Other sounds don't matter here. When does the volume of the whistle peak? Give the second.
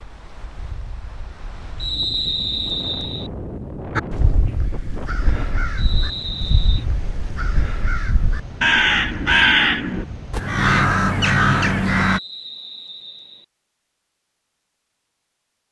2 s.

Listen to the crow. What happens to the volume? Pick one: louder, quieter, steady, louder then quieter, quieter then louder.
louder.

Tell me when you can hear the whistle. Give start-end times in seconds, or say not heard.
1.8-3.3, 5.8-6.8, 12.0-13.4.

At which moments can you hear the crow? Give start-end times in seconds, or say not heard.
4.0-12.2.